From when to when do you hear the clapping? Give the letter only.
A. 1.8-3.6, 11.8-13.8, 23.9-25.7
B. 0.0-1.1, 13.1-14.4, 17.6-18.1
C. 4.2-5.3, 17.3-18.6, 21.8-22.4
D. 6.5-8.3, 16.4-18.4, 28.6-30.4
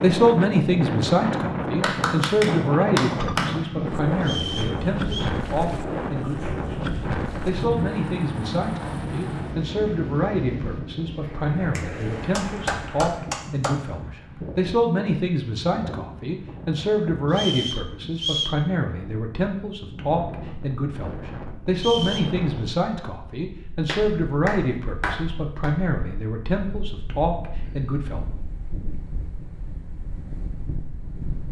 A.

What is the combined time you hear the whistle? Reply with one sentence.
The whistle can be heard for 3 seconds in total.